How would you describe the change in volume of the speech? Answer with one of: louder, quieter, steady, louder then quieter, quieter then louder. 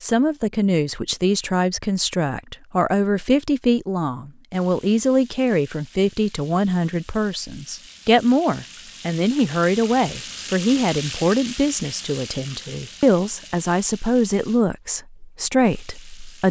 steady.